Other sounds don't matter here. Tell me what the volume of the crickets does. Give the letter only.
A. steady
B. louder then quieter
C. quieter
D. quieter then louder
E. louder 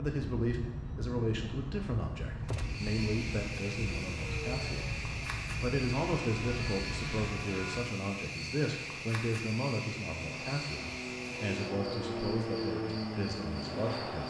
A.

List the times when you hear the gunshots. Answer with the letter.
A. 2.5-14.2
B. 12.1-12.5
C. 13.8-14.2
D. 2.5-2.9
D.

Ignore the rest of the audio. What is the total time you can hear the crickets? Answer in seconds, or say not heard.
12 s.